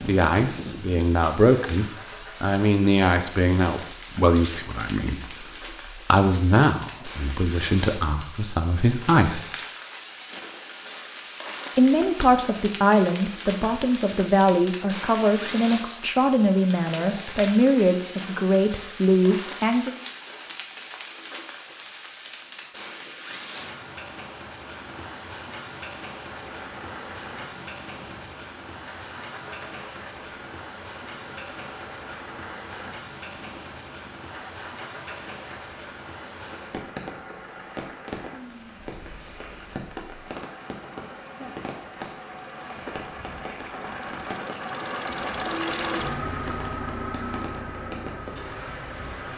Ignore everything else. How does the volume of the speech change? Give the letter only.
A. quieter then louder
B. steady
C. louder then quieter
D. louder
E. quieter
B.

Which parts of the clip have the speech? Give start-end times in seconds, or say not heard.
0.0-9.5, 11.8-19.9.